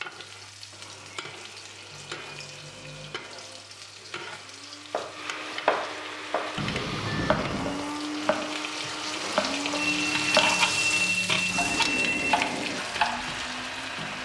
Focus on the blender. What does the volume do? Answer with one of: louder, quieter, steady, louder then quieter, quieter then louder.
louder.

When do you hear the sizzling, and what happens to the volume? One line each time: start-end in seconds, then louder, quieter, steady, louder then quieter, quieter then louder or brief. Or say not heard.
0.0-14.1 louder.